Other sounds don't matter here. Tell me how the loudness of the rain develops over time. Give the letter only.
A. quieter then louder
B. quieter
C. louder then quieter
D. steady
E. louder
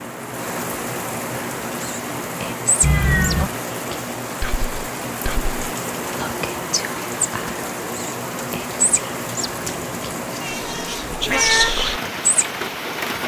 D.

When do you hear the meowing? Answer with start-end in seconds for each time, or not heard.
2.8-3.5, 10.4-11.8.